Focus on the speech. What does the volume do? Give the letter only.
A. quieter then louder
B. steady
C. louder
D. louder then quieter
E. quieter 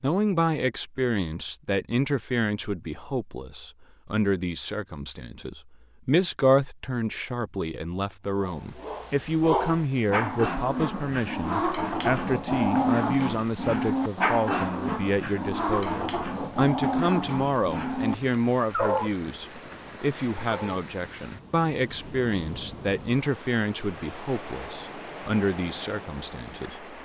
B.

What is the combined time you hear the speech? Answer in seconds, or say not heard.
27 s.